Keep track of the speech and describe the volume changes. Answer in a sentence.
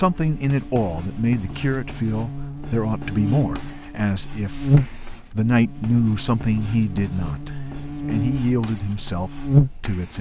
The volume of the speech stays about the same.